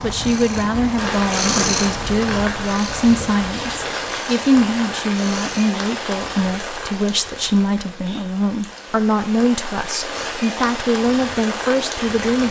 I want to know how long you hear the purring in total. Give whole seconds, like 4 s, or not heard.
6 s.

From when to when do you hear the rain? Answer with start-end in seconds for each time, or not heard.
0.0-12.4.